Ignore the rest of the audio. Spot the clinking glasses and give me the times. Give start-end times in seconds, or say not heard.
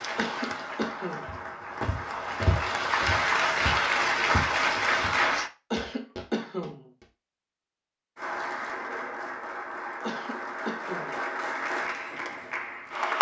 not heard.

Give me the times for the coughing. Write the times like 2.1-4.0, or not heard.
0.1-1.4, 5.7-6.8, 10.0-11.2.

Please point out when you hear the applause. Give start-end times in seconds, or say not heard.
0.0-5.5, 8.2-13.1.